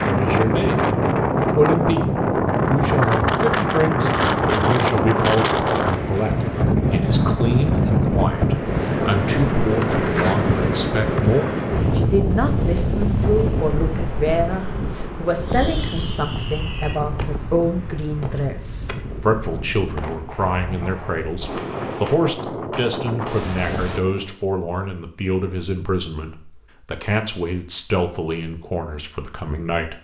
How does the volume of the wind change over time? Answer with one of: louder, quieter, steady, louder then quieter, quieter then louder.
quieter.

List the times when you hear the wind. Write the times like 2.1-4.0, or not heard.
0.0-24.0.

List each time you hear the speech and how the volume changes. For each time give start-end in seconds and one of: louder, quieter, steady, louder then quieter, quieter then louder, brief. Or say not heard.
0.0-0.8 brief
1.6-2.0 brief
2.7-29.9 steady.